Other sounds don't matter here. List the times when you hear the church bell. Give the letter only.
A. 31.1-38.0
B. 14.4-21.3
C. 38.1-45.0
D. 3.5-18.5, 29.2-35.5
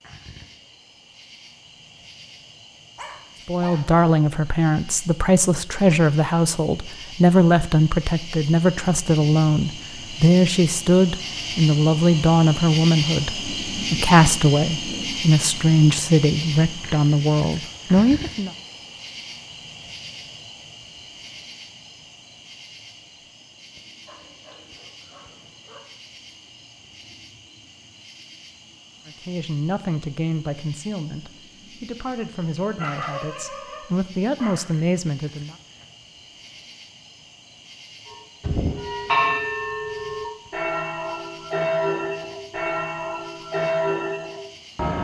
C.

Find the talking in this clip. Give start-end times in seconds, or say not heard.
3.5-18.5, 29.2-35.5.